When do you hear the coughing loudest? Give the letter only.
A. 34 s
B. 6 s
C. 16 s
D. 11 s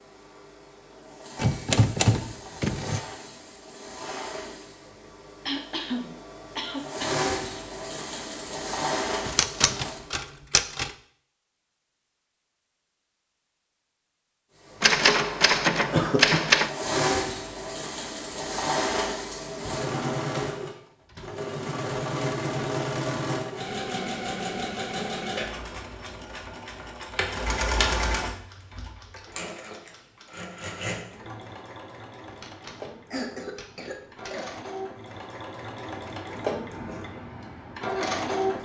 C.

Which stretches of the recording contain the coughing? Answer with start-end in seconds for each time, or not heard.
5.5-7.6, 15.9-16.4, 33.1-34.6.